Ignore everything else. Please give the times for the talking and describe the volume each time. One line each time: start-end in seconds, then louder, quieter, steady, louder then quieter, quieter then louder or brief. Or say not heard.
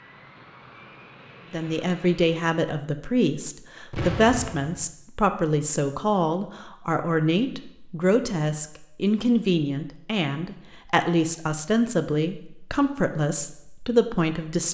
1.5-14.6 steady.